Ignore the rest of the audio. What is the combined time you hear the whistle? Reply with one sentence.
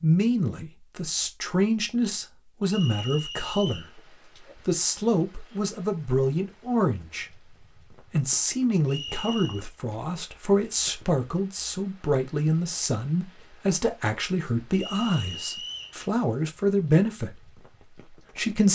The whistle can be heard for 3 seconds in total.